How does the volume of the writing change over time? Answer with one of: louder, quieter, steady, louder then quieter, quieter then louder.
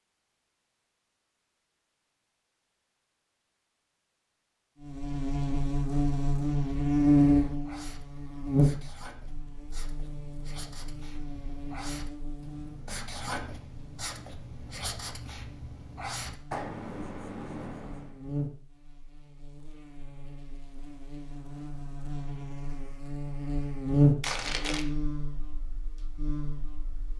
louder.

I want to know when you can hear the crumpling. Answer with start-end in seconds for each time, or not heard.
24.2-24.9.